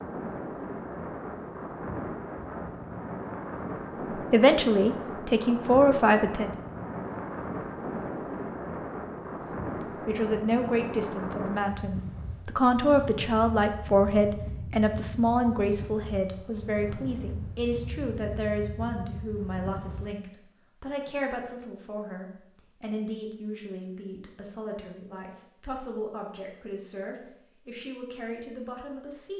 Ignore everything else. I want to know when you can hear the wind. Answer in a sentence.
The wind can be heard from 0.0 to 20.1 s.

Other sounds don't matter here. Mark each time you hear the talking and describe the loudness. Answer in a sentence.
The talking can be heard briefly from 4.1 to 6.5 s; and from 9.4 to 29.3 s, getting quieter.